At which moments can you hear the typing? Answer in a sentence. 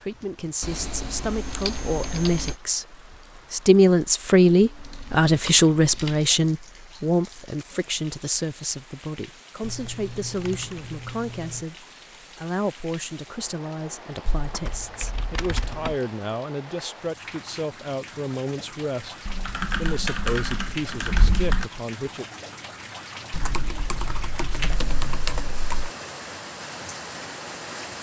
The typing can be heard from 0.6 to 2.5 s, from 4.8 to 6.3 s, from 9.6 to 11.7 s, from 14.2 to 16.0 s, from 19.2 to 21.7 s and from 23.3 to 25.9 s.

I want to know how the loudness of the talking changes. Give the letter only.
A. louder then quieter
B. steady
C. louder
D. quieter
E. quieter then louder
D.